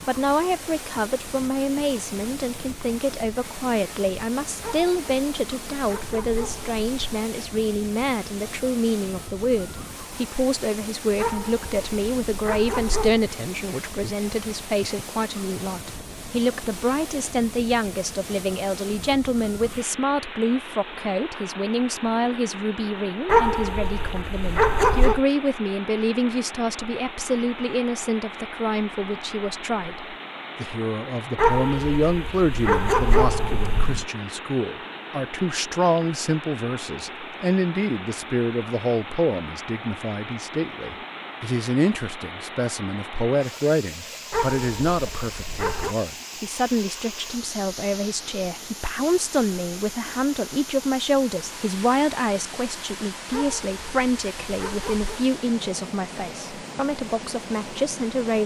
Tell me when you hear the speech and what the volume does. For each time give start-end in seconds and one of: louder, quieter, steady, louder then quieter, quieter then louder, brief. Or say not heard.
0.0-58.4 steady.